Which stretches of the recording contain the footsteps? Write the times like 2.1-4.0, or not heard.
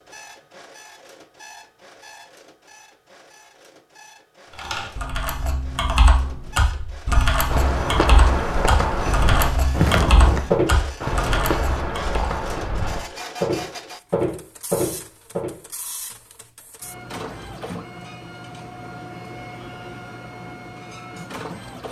6.7-15.6.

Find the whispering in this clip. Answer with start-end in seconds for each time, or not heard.
not heard.